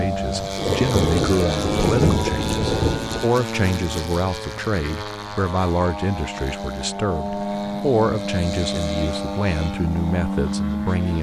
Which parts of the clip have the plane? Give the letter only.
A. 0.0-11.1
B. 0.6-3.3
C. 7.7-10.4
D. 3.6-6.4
A.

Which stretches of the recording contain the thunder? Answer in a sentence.
You can hear the thunder from 0.6 to 3.3 s.